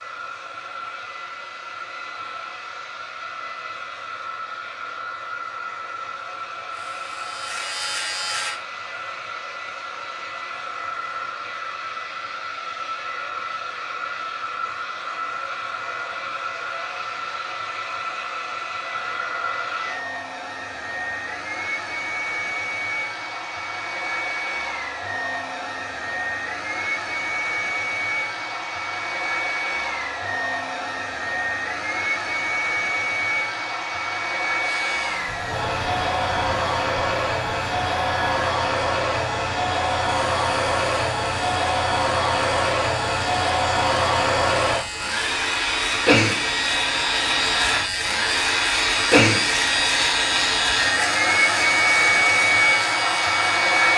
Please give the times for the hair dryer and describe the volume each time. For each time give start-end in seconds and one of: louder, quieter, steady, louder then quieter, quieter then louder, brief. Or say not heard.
0.0-53.9 louder.